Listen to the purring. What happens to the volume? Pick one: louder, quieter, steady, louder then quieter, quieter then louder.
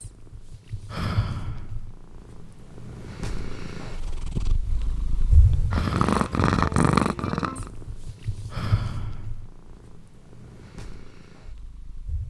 louder then quieter.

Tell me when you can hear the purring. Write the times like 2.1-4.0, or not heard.
0.0-12.2.